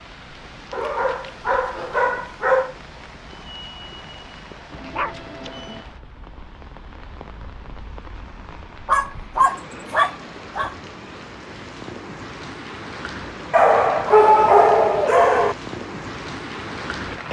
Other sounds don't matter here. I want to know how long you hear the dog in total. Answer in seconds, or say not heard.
7 s.